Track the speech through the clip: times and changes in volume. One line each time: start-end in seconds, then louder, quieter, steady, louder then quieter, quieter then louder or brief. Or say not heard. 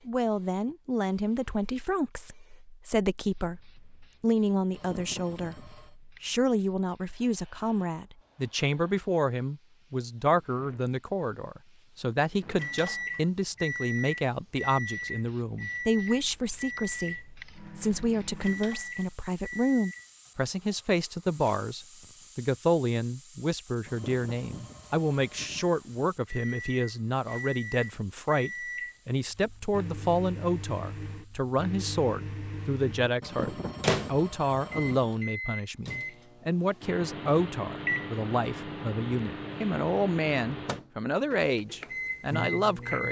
0.1-43.0 steady.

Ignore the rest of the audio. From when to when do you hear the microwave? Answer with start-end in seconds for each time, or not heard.
12.4-20.1, 26.2-43.0.